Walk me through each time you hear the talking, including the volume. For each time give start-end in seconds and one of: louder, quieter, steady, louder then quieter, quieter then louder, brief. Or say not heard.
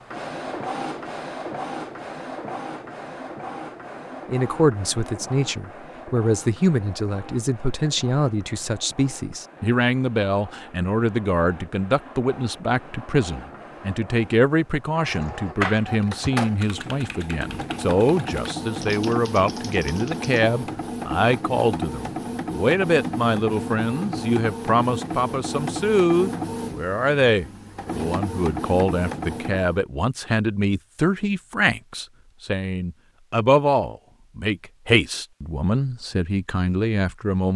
4.2-37.5 steady.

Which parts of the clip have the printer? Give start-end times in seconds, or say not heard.
0.0-29.9.